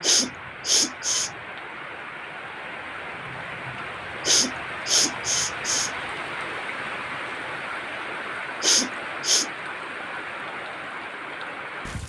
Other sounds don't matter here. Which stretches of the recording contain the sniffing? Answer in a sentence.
The sniffing can be heard from 0.0 to 1.3 s, from 4.2 to 5.9 s and from 8.6 to 9.4 s.